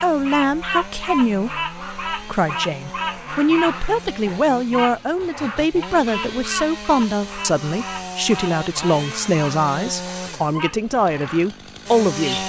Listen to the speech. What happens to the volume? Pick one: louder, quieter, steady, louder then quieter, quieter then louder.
steady.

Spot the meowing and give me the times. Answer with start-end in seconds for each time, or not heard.
not heard.